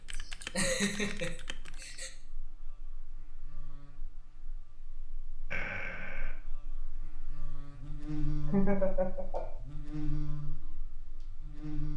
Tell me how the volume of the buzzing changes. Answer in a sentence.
The volume of the buzzing goes up.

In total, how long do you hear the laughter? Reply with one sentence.
You can hear the laughter for 4 seconds altogether.